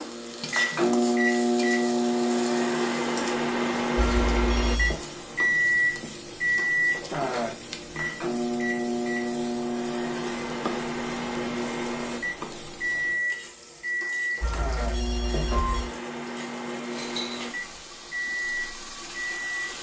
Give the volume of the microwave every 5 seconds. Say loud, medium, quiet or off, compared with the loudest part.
loud, loud, medium, medium.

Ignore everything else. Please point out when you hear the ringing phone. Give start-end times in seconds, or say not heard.
4.0-5.0, 14.4-15.9.